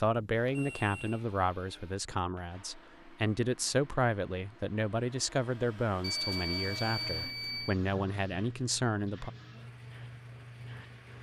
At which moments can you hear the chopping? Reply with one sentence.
The chopping can't be heard in this clip.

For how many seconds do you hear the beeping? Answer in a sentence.
The beeping can be heard for 3 seconds in total.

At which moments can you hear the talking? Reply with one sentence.
The talking can be heard from 0.0 to 9.3 s.